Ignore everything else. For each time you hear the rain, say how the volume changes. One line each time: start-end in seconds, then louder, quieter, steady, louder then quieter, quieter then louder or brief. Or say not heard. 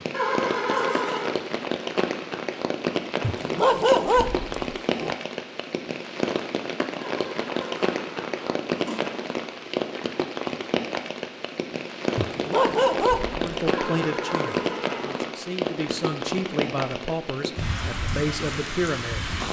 0.0-19.4 steady.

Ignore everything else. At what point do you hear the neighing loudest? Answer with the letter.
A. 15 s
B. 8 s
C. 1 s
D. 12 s
C.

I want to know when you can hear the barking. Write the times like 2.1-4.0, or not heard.
3.2-5.2, 12.2-14.1.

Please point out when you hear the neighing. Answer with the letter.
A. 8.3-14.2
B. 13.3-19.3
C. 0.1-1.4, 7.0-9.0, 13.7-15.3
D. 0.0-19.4
C.